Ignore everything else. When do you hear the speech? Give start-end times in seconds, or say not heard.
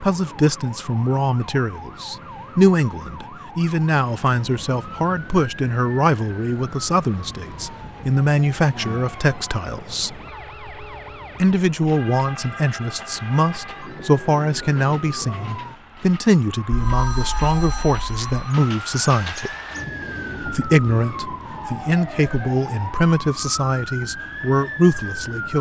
0.0-10.2, 11.4-19.5, 20.4-25.5.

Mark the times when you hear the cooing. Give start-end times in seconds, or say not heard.
not heard.